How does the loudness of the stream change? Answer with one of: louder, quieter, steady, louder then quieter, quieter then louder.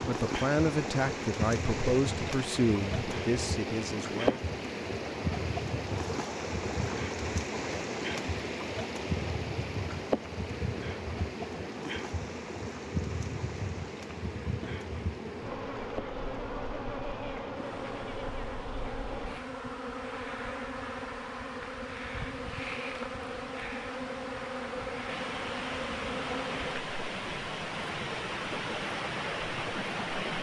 quieter then louder.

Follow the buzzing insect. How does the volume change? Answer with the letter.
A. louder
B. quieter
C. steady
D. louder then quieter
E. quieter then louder
C.